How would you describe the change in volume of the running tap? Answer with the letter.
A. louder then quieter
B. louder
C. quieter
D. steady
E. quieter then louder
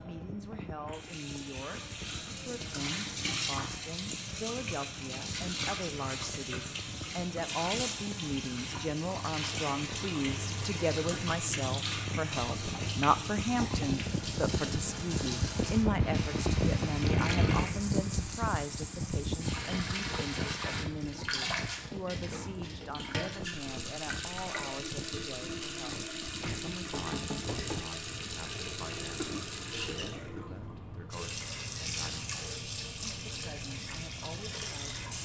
D.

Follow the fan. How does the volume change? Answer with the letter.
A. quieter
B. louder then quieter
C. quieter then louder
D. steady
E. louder
B.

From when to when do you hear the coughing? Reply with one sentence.
You can hear the coughing from 29.1 to 30.6 s.